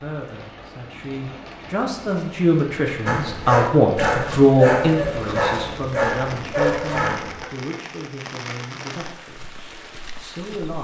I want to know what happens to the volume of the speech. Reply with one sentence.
The loudness of the speech goes up, then down.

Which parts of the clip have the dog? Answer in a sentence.
You can hear the dog from 3.0 to 7.5 s.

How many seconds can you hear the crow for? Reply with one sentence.
You can't hear the crow here.